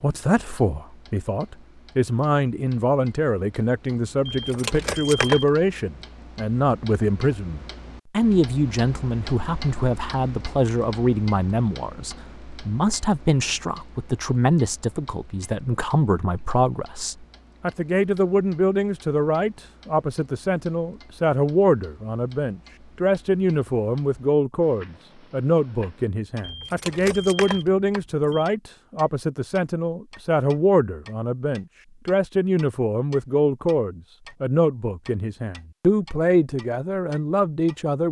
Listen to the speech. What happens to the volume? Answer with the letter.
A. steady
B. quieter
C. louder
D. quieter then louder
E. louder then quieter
A.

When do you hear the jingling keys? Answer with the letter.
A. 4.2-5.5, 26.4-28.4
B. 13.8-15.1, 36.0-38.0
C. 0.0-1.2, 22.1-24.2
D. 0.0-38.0
A.